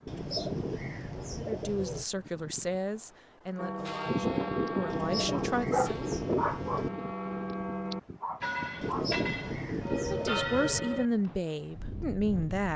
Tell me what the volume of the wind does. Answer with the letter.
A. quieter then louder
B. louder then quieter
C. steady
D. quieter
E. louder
B.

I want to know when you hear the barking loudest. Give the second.
6 s.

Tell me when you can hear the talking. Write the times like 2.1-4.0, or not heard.
1.4-6.0, 9.9-12.7.